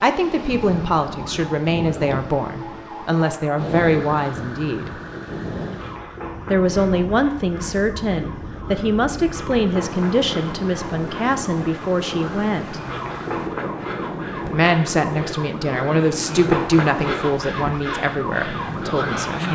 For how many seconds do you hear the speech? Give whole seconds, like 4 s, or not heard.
16 s.